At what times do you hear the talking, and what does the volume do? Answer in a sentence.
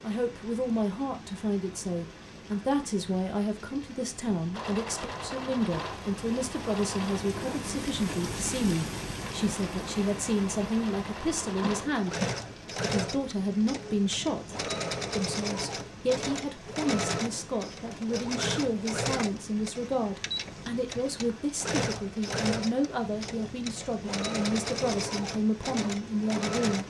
You can hear the talking from 0.0 to 26.8 s, at a steady volume.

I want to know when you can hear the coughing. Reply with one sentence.
You can hear the coughing from 11.6 to 12.3 s.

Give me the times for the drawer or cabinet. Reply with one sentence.
The drawer or cabinet can't be heard in this clip.